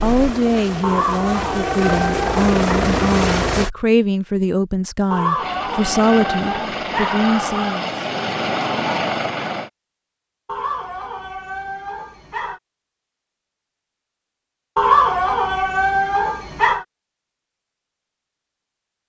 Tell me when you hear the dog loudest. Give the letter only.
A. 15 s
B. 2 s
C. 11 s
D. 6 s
A.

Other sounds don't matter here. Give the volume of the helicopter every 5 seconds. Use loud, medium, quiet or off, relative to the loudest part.
loud, loud, off, off.